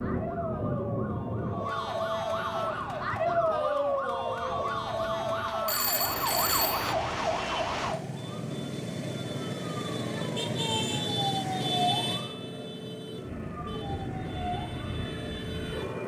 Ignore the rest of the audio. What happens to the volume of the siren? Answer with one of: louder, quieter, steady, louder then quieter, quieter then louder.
quieter.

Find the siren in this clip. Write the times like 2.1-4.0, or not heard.
0.0-16.0.